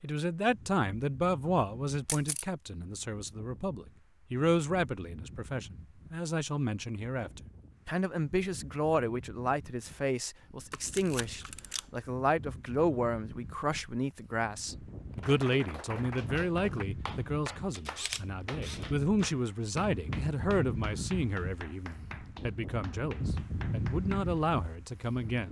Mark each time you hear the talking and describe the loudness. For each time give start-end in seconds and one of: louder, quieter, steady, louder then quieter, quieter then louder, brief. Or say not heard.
0.0-25.4 steady.